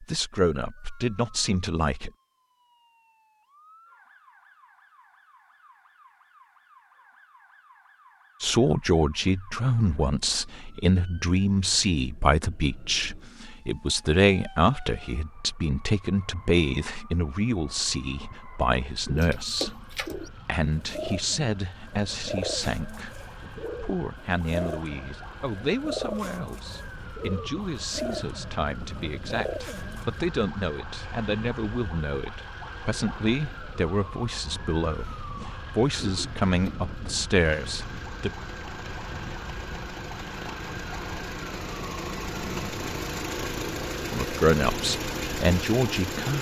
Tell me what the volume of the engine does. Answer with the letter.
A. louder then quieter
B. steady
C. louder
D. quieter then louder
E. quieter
C.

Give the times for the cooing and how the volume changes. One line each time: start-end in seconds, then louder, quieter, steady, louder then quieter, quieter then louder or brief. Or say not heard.
19.0-30.2 steady.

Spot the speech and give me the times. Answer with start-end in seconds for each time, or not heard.
0.0-2.1, 8.4-38.3, 44.1-46.3.